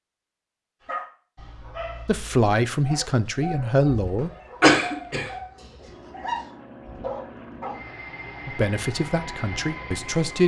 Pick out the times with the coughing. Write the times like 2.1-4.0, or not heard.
4.0-5.3.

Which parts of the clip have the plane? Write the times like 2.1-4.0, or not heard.
5.8-10.4.